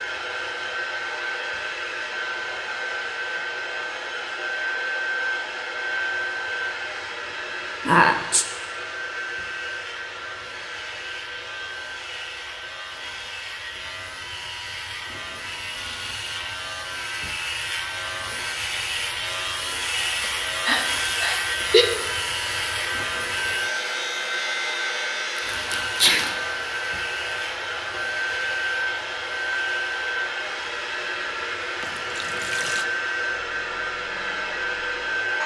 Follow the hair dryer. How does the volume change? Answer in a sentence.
The volume of the hair dryer goes down, then up.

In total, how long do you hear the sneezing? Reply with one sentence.
You can hear the sneezing for 3 seconds altogether.